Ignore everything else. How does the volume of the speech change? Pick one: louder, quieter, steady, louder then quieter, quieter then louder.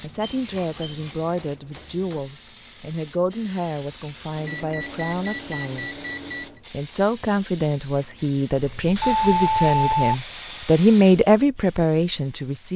louder.